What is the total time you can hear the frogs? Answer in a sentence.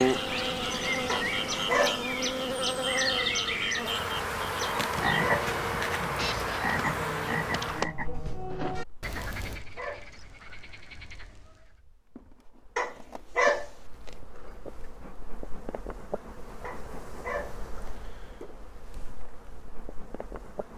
You can hear the frogs for 12 seconds altogether.